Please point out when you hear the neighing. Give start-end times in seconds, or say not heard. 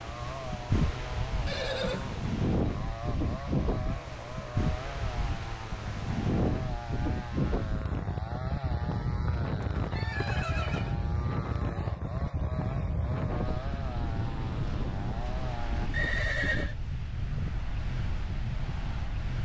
1.4-2.2, 9.1-10.9, 15.9-16.8.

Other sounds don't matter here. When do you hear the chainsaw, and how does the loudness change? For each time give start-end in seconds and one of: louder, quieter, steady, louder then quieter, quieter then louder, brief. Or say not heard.
0.0-15.9 steady.